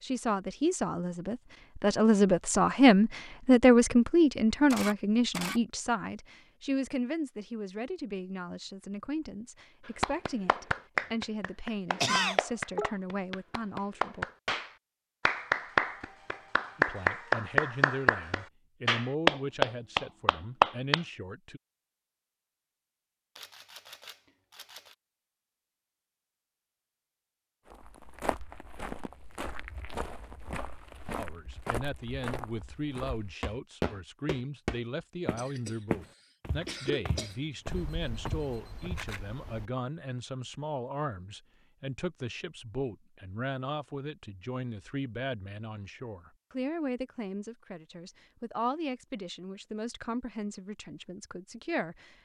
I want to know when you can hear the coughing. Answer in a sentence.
The coughing can be heard from 12.0 to 12.9 s, from 35.4 to 35.8 s and from 36.6 to 37.4 s.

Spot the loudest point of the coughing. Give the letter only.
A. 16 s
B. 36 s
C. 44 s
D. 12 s
D.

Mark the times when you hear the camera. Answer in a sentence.
The camera can be heard from 4.7 to 5.6 s, from 23.4 to 24.9 s and from 37.6 to 39.7 s.